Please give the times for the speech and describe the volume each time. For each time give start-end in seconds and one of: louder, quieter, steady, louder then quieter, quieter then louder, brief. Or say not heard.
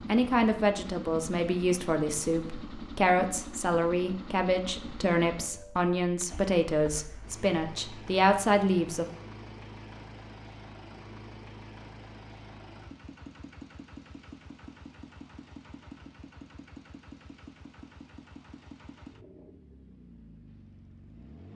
0.1-9.1 steady.